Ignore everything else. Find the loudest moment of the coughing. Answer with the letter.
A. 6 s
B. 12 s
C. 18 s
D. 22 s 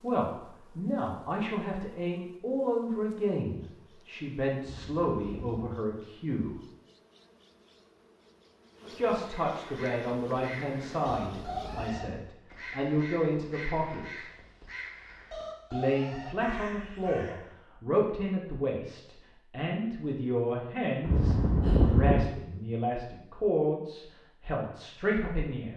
D.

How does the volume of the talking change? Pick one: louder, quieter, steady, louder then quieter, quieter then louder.
steady.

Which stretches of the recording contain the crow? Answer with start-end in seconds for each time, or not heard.
9.4-17.4.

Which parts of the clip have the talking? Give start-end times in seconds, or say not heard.
0.0-6.5, 8.9-14.2, 15.7-25.7.